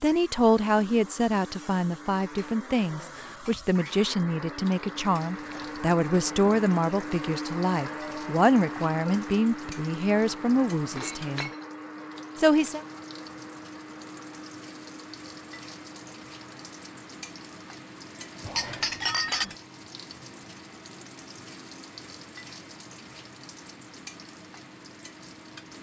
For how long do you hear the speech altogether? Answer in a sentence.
You can hear the speech for 12 seconds altogether.